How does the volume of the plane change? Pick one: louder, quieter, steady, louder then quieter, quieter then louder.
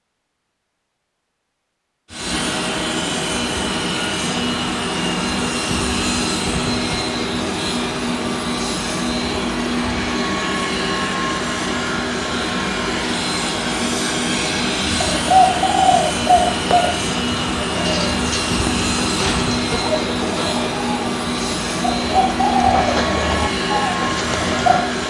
steady.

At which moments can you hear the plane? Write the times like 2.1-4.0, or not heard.
2.1-25.0.